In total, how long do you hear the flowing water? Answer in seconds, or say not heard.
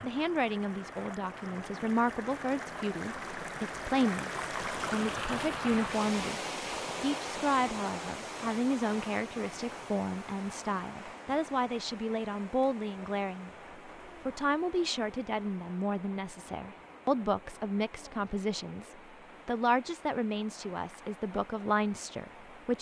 23 s.